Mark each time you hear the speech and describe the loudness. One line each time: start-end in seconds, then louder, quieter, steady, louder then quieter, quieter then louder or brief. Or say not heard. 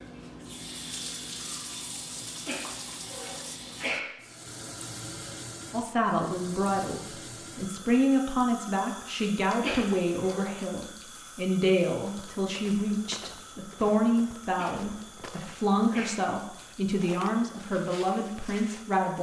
5.7-19.1 steady.